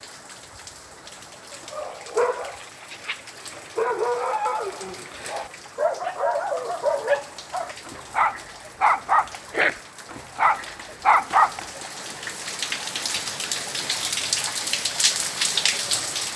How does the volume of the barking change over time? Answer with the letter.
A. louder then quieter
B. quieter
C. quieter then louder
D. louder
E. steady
D.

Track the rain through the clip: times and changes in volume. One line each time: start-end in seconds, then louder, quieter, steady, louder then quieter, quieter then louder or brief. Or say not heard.
0.0-16.3 louder.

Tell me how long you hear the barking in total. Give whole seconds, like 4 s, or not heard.
10 s.